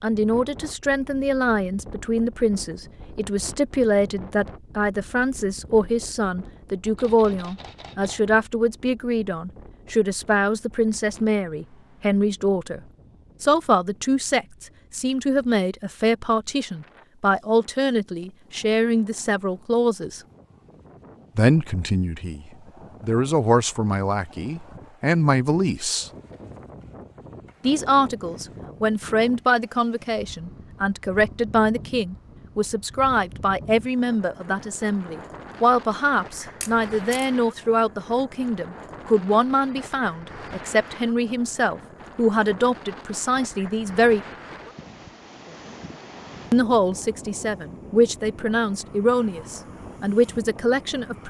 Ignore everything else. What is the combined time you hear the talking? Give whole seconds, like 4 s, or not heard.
46 s.